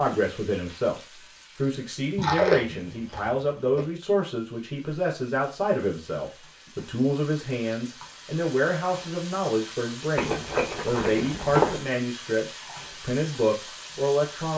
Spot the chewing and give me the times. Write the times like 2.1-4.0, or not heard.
2.1-3.9, 10.2-11.8.